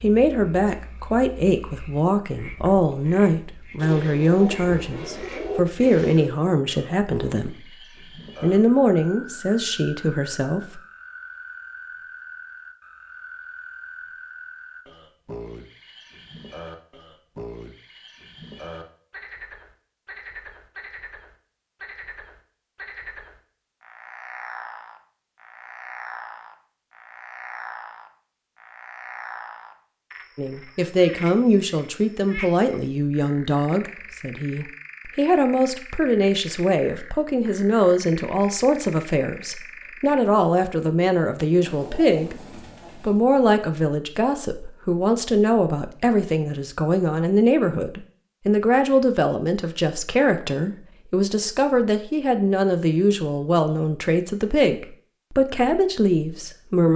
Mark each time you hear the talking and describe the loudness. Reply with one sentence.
You can hear the talking from 0.0 to 7.8 s, at a steady volume; briefly from 8.4 to 10.8 s; and from 30.4 to 56.9 s, at a steady volume.